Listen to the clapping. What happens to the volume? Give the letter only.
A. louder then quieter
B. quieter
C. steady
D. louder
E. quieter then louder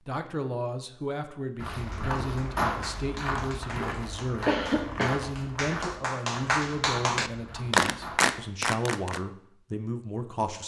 D.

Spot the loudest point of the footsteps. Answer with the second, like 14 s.
3 s.